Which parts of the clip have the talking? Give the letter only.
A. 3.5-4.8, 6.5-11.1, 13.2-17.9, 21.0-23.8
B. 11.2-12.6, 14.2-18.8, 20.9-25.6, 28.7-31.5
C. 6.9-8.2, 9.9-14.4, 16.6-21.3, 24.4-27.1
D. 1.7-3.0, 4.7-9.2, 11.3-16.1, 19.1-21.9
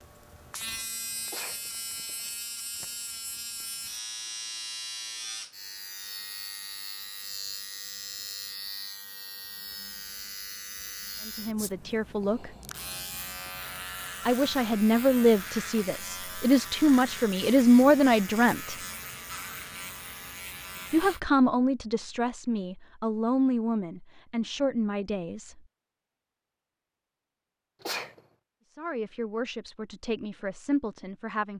B.